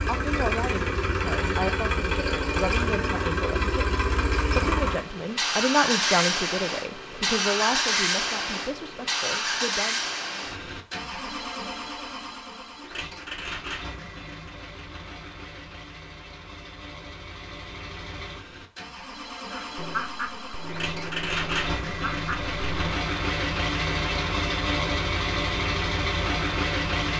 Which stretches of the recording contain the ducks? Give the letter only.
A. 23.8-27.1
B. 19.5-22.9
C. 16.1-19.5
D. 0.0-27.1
B.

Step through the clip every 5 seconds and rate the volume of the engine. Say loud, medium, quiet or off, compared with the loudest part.
loud, loud, medium, quiet, loud, loud.